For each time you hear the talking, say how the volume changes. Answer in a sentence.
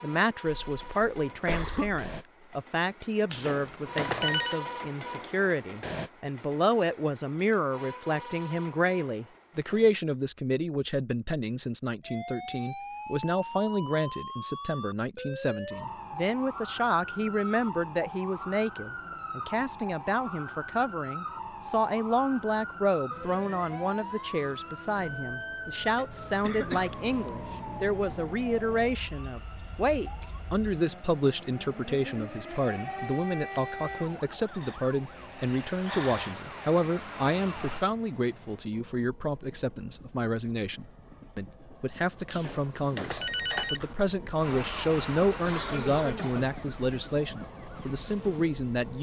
The talking can be heard from 0.0 to 48.9 s, at a steady volume.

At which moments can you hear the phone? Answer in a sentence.
You can hear the phone from 3.3 to 4.6 s and from 42.3 to 44.0 s.